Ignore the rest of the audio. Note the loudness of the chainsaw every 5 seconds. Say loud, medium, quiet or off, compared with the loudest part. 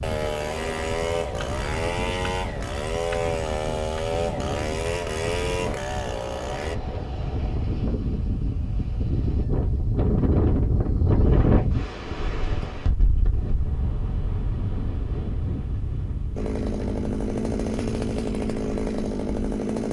loud, loud, off, loud.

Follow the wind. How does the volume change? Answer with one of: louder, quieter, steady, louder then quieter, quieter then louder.
louder then quieter.